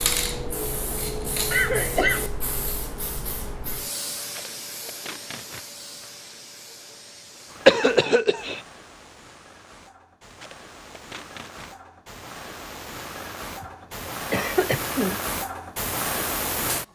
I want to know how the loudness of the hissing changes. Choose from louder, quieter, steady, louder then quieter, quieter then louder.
quieter then louder.